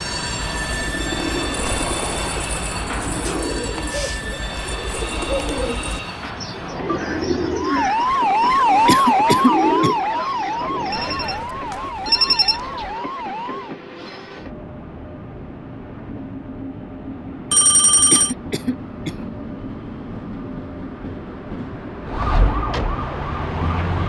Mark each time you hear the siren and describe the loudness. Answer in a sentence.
You can hear the siren from 7.5 to 13.8 s, getting quieter; and briefly from 22.1 to 24.0 s.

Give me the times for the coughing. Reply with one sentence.
The coughing can be heard from 8.8 to 9.9 s and from 18.1 to 19.2 s.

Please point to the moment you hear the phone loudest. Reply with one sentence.
The volume of the phone peaks at 12 seconds.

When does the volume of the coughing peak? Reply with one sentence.
The volume of the coughing peaks at 9 seconds.